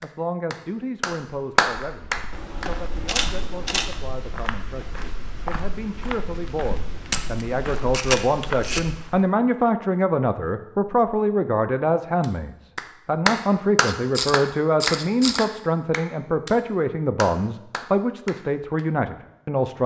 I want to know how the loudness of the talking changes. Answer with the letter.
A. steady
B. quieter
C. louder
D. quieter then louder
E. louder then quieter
C.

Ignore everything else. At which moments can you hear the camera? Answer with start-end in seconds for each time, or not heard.
2.3-4.0, 7.1-8.8, 13.8-15.4.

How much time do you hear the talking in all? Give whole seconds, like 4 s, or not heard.
20 s.